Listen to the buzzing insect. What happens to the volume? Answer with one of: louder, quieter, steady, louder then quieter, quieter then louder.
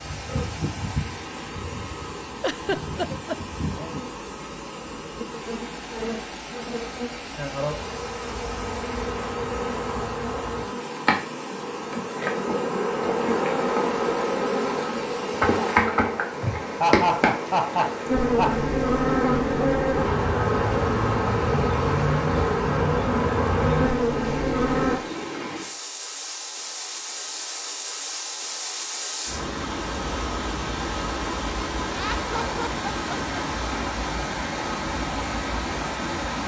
louder.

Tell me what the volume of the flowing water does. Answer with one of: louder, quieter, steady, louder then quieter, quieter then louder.
louder.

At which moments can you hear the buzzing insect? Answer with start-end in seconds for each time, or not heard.
0.0-25.0.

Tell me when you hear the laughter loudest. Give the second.
17 s.